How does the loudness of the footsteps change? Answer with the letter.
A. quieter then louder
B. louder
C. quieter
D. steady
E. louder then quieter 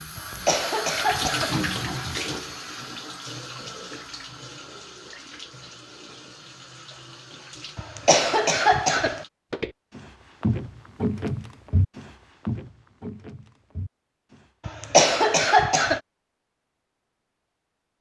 E.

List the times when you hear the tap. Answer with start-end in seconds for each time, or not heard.
0.0-9.3.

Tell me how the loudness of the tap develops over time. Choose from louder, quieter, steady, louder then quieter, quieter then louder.
quieter.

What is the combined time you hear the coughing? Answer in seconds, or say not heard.
4 s.